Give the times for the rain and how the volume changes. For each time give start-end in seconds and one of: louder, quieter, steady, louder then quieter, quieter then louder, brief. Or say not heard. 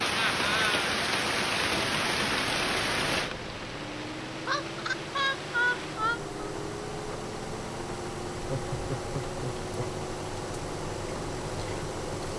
0.0-12.2 quieter.